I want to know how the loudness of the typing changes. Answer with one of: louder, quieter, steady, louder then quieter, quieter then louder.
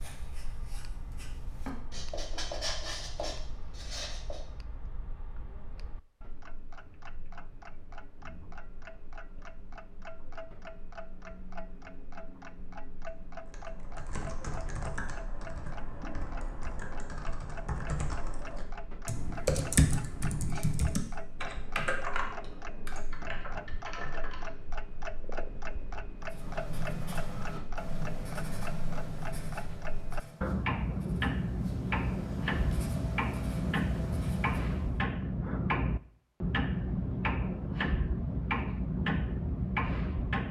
louder then quieter.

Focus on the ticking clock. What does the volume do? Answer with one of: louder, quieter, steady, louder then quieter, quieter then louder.
louder.